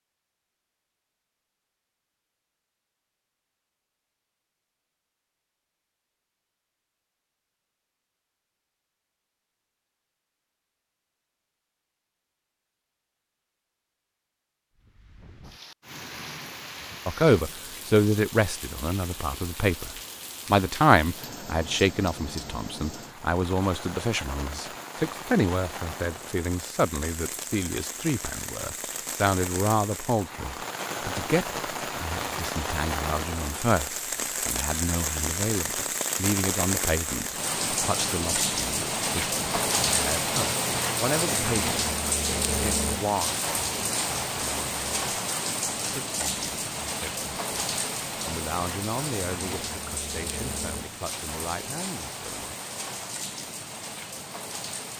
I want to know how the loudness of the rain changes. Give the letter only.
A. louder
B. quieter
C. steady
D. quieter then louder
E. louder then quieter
E.